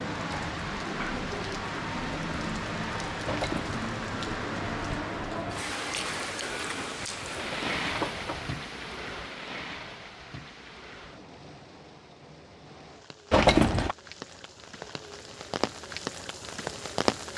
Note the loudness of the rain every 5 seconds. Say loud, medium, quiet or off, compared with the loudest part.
loud, loud, quiet, loud.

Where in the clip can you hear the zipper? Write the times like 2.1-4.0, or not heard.
3.2-3.8, 7.3-8.6, 13.3-13.9.